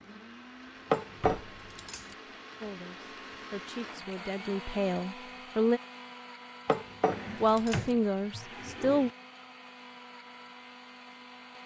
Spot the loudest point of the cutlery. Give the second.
1 s.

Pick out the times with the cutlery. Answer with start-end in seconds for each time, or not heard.
0.9-2.1, 6.7-8.0.